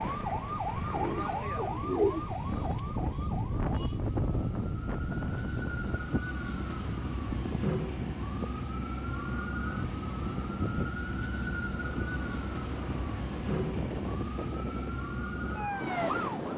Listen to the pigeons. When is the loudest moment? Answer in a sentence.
The volume of the pigeons peaks at 2 seconds.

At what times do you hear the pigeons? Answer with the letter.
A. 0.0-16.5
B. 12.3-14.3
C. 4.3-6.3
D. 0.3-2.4
D.